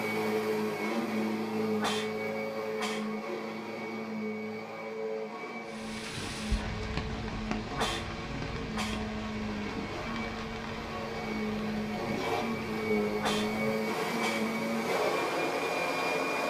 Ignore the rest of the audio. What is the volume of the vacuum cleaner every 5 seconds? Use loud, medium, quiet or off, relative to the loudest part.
loud, medium, loud, loud.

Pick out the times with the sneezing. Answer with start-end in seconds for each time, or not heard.
1.8-3.1, 7.7-9.1, 13.2-14.5.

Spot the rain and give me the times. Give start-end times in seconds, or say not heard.
5.7-16.4.